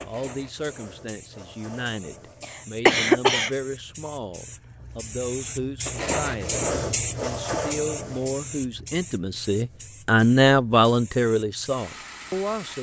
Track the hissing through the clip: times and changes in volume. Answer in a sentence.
The hissing can be heard from 0.0 to 12.7 s, getting louder then quieter.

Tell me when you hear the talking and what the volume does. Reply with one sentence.
You can hear the talking from 0.0 to 12.7 s, getting louder.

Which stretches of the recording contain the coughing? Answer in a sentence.
You can hear the coughing from 2.4 to 3.5 s.